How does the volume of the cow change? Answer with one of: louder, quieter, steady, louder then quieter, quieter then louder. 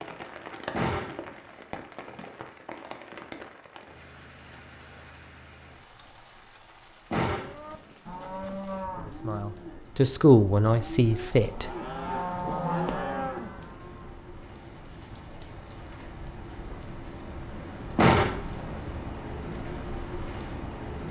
quieter then louder.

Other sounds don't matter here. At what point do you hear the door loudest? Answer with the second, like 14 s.
18 s.